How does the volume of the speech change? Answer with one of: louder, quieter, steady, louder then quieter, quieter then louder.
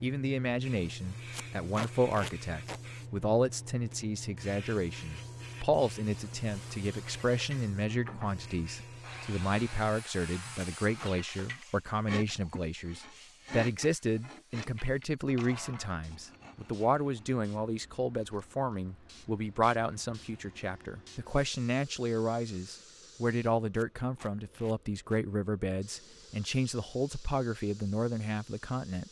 steady.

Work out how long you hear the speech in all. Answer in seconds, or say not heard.
29 s.